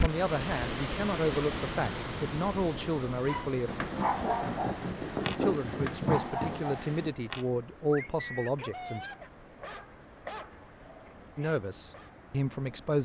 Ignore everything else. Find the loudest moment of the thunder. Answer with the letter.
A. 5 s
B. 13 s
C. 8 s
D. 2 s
A.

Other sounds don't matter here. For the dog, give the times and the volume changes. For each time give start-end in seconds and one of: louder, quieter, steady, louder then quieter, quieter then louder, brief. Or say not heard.
3.2-12.2 quieter.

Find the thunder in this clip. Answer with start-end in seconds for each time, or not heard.
3.6-7.2.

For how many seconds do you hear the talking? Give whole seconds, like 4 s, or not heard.
9 s.